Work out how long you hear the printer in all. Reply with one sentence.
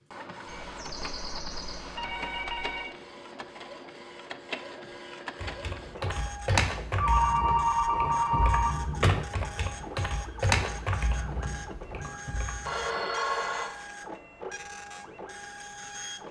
You can hear the printer for 16 seconds altogether.